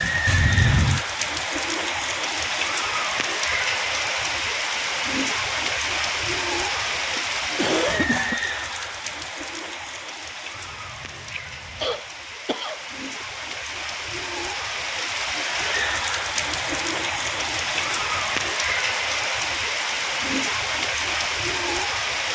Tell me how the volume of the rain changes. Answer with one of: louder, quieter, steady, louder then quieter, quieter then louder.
quieter then louder.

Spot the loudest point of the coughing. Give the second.
8 s.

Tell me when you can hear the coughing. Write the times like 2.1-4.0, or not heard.
6.8-8.4, 11.8-13.2.